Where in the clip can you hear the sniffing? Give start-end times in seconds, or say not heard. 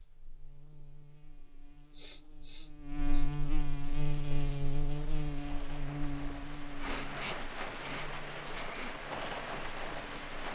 1.5-3.3, 6.8-9.0.